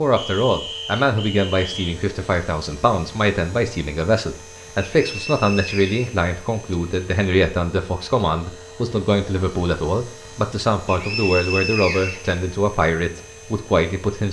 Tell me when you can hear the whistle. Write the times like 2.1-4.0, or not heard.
0.1-1.9, 4.8-6.8, 10.8-12.4.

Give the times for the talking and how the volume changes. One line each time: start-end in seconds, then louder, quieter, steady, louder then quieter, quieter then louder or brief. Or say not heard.
0.0-14.2 steady.